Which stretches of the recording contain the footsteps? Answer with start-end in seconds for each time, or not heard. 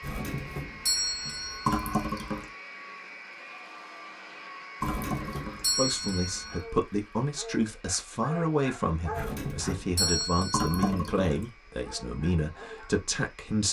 not heard.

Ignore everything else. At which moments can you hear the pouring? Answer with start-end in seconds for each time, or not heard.
1.6-2.5, 4.8-6.7, 10.5-11.5.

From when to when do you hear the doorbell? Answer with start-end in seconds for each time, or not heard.
0.0-2.2, 4.8-6.7, 9.1-10.9.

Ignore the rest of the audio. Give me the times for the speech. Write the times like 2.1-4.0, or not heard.
5.8-13.6.